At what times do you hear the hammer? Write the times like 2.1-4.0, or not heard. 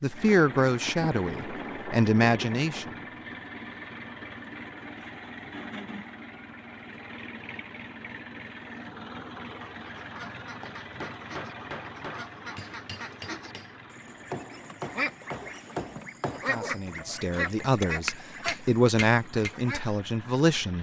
10.6-19.6.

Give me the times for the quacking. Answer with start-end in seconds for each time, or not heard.
9.7-19.9.